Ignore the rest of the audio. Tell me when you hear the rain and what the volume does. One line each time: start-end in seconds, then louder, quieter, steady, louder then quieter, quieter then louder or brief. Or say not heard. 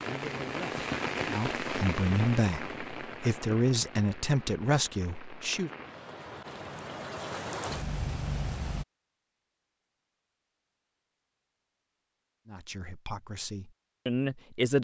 0.0-8.8 quieter then louder.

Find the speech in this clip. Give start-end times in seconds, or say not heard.
0.0-5.7, 12.4-14.7.